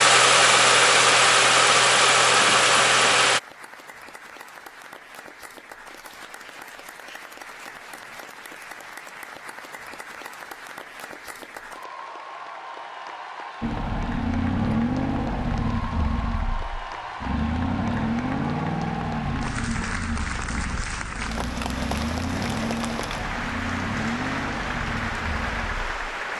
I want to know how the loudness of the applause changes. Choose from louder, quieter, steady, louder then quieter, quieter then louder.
louder.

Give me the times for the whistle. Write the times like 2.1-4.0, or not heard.
not heard.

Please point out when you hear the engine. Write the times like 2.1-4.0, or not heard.
0.0-3.4, 13.6-26.2.